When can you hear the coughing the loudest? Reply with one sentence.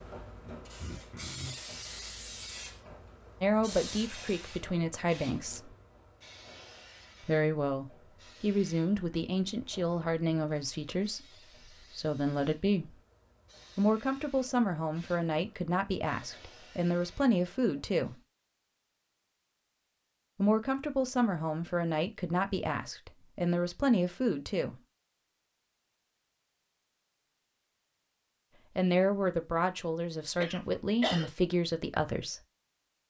The loudest moment of the coughing is at 31 seconds.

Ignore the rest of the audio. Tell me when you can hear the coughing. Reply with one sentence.
The coughing can be heard from 0.8 to 1.6 s and from 30.4 to 31.3 s.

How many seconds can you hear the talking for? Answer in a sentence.
You can hear the talking for 21 seconds altogether.